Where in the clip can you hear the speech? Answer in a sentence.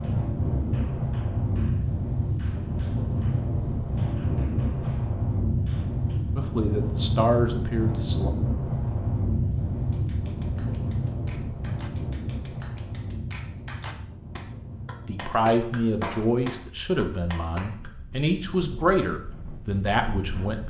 The speech can be heard from 6.3 to 8.3 s and from 15.1 to 20.6 s.